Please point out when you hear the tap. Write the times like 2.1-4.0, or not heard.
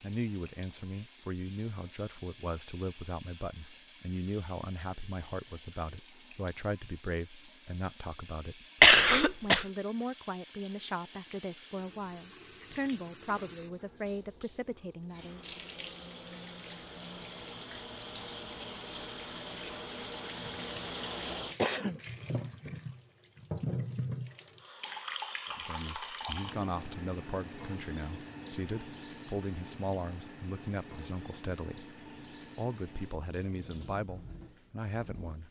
0.0-35.4.